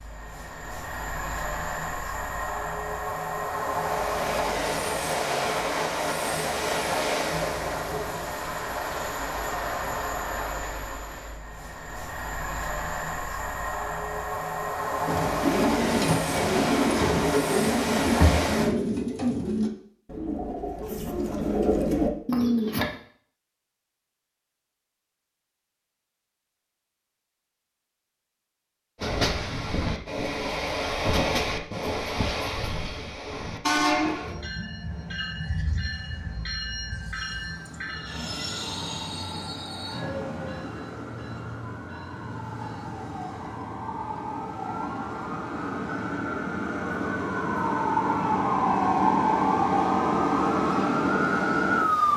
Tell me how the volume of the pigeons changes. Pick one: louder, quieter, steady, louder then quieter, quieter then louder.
quieter then louder.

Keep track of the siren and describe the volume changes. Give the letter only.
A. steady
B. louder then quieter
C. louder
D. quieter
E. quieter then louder
C.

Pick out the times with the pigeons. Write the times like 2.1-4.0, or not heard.
15.1-22.9.